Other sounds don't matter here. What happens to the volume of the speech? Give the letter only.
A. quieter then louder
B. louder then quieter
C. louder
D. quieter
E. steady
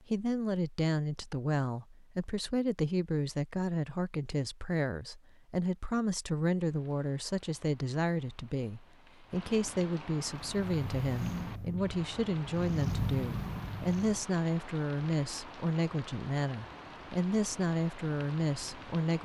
E.